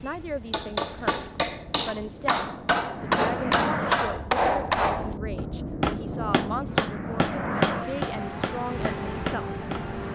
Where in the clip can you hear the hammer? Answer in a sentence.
The hammer can be heard from 0.0 to 9.8 s.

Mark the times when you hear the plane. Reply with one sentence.
The plane can be heard from 0.0 to 10.1 s.